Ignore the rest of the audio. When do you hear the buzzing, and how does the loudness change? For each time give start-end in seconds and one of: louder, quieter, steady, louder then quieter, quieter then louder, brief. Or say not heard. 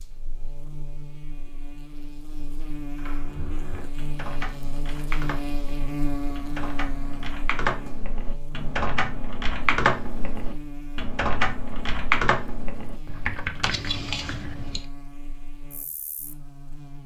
0.0-17.0 louder then quieter.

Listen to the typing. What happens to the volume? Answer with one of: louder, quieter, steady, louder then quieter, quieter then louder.
louder.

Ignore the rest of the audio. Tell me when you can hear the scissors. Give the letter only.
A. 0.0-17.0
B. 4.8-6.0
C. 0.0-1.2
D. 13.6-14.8
D.